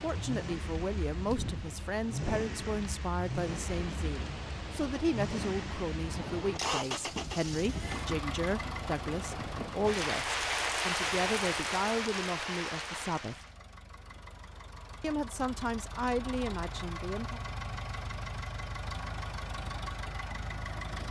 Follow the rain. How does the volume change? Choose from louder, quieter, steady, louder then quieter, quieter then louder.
louder.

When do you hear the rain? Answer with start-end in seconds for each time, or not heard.
0.0-13.6.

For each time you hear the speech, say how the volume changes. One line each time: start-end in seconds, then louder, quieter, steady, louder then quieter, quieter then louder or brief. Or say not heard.
0.0-13.3 steady
15.0-17.4 brief.